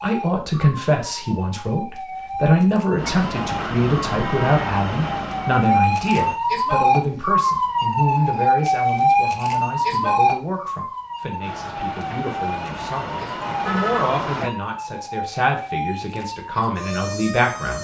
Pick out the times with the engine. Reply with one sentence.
You can hear the engine from 3.0 to 6.4 s and from 11.4 to 14.5 s.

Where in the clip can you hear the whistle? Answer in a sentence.
The whistle can't be heard in this clip.